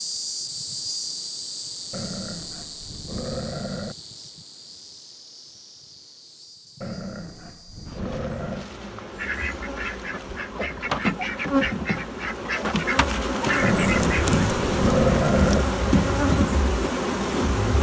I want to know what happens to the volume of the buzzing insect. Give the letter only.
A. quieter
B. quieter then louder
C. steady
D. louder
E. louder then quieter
B.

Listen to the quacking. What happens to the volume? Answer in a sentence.
The loudness of the quacking goes up.